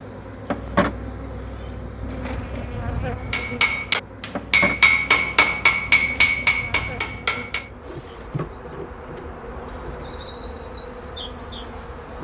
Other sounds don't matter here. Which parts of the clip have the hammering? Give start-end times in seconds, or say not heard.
3.2-7.7.